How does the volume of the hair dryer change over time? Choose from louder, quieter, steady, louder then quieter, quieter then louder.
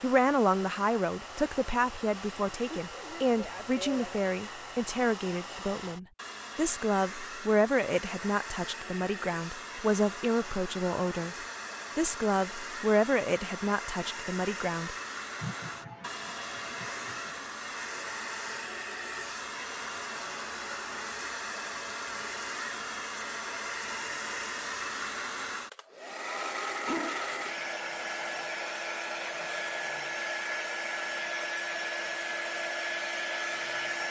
louder.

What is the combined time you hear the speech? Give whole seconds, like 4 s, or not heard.
14 s.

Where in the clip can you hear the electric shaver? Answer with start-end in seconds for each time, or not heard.
not heard.